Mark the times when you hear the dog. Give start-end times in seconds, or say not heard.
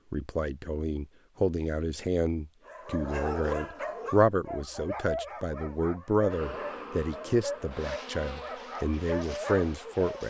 2.6-10.2.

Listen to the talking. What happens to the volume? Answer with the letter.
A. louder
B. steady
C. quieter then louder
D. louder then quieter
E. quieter
B.